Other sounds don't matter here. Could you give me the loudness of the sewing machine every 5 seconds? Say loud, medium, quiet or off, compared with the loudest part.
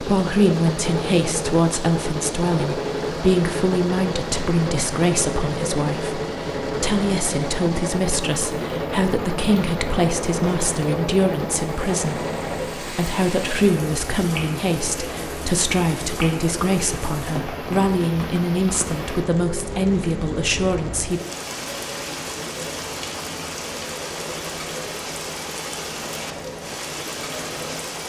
loud, loud, loud, medium, medium, medium.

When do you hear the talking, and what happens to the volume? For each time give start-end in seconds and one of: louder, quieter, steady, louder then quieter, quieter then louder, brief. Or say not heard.
0.0-21.2 steady.